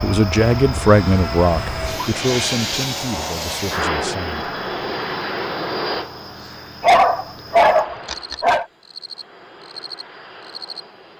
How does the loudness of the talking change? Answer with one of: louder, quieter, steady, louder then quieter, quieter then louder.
quieter.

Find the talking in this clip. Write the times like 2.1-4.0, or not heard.
0.0-4.4.